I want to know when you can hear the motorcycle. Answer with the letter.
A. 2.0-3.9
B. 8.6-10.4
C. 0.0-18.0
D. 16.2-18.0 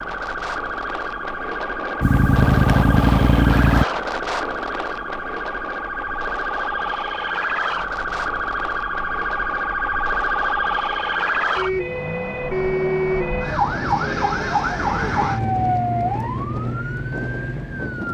A.